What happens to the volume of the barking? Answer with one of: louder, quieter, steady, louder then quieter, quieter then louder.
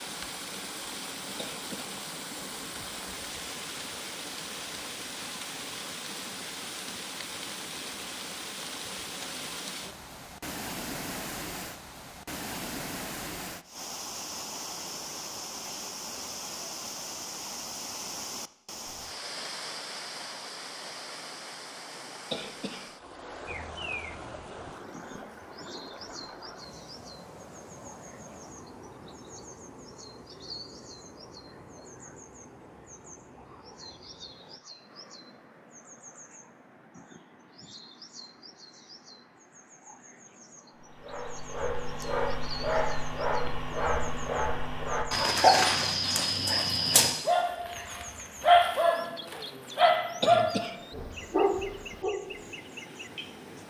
louder.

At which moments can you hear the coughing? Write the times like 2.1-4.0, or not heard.
1.4-2.0, 22.3-22.9, 50.2-50.8.